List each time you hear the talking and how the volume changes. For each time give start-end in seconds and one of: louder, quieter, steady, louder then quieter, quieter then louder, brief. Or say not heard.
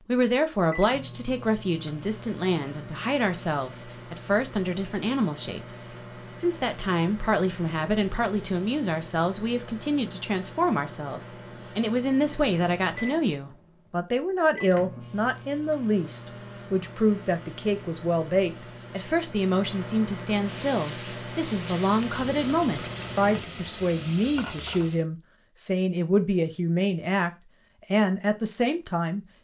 0.1-27.3 steady
27.9-29.2 brief.